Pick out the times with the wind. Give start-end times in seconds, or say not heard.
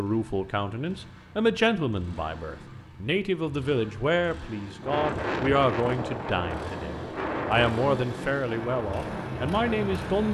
4.8-10.2.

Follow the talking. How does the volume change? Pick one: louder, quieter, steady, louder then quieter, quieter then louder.
steady.